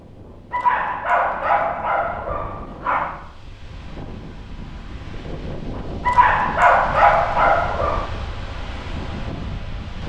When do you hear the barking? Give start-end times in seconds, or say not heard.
0.5-3.2, 6.0-8.1.